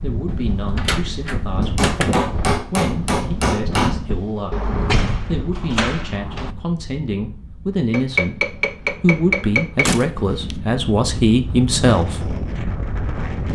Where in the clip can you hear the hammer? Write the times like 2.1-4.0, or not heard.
1.6-4.0, 7.9-9.9.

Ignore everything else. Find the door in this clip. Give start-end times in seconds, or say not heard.
0.2-2.2, 4.5-6.5, 9.8-10.6.